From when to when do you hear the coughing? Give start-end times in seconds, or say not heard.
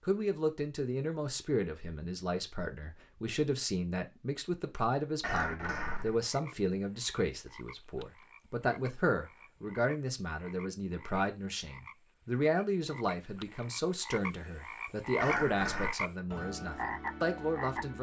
5.2-6.2, 15.2-15.9.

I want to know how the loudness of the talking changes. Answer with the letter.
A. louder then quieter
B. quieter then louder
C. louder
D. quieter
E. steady
E.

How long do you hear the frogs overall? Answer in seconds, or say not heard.
12 s.